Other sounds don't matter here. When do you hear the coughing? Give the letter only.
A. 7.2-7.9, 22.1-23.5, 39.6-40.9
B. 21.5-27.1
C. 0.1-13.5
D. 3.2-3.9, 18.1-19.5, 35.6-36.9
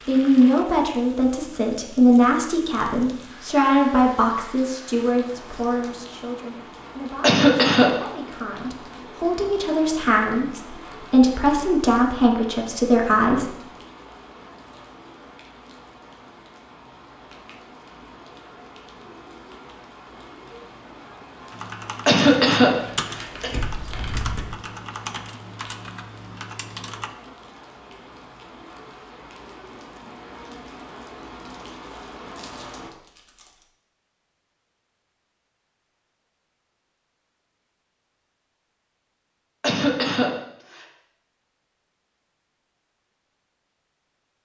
A.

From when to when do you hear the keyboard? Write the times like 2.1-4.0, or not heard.
21.5-27.1.